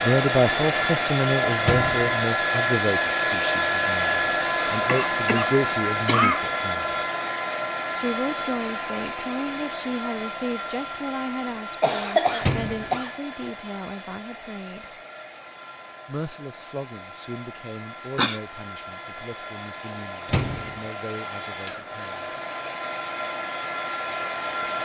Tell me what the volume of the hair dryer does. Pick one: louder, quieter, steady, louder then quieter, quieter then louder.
quieter then louder.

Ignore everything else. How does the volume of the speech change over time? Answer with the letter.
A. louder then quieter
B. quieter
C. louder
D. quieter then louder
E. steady
B.